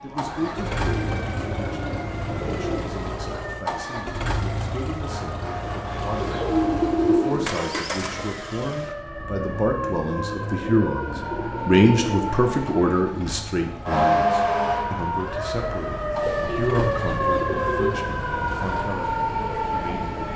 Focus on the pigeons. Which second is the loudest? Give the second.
7 s.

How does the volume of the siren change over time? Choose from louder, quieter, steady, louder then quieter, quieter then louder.
louder.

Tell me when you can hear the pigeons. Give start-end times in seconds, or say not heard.
0.3-3.0, 6.2-7.8, 10.6-12.3, 16.2-18.0.